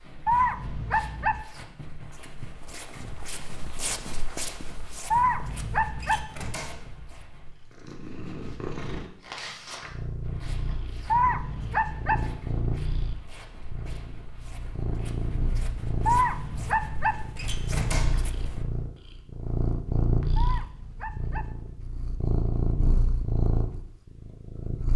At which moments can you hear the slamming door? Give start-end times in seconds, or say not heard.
6.0-7.0, 17.4-18.3.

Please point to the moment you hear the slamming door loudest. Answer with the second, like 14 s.
18 s.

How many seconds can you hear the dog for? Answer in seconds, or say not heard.
6 s.